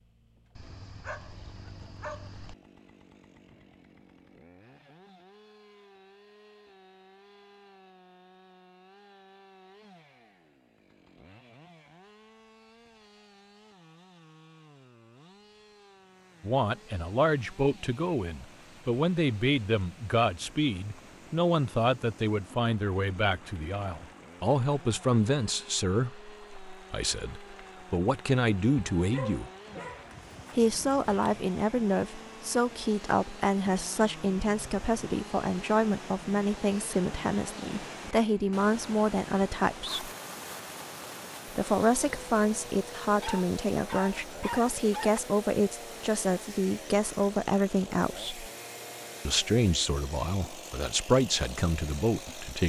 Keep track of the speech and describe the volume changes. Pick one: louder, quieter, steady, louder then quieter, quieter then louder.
steady.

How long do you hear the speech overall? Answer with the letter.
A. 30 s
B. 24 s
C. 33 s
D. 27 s
C.